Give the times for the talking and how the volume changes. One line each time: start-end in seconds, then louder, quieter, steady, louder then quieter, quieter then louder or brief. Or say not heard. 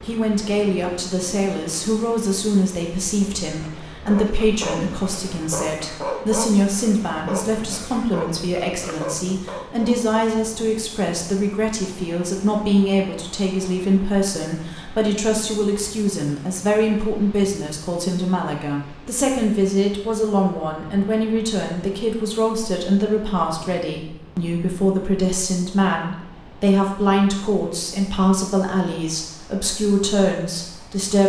0.0-31.2 steady.